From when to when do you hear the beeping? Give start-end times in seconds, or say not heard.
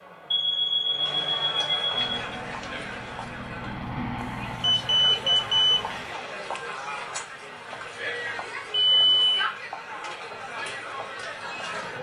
0.3-2.0, 4.2-6.0, 8.7-9.4.